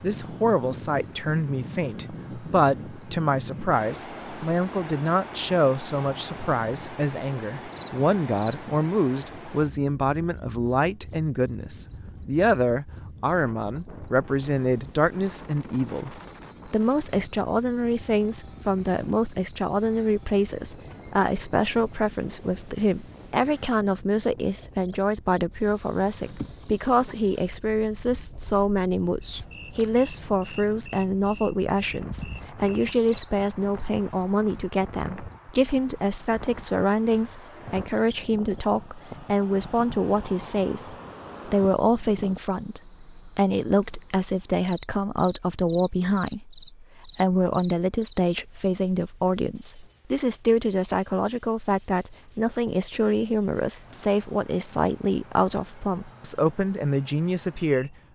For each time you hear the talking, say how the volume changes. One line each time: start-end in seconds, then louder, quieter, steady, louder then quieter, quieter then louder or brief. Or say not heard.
0.0-58.0 steady.